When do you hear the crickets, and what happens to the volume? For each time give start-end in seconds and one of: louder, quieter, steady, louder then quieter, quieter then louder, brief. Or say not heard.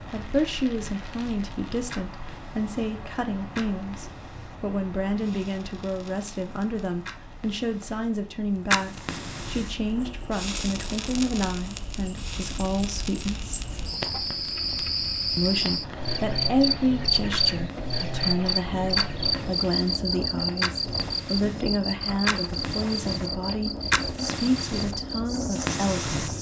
9.6-26.3 louder then quieter.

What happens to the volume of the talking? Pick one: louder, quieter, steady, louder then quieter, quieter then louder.
steady.